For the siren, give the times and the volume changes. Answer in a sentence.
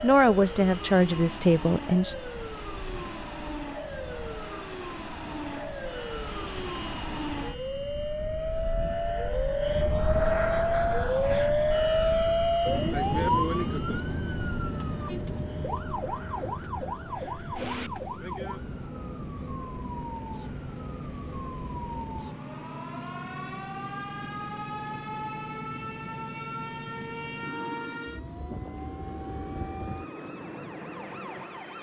You can hear the siren from 0.0 to 31.7 s, getting louder then quieter.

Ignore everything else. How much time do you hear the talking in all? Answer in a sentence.
You can hear the talking for 2 seconds altogether.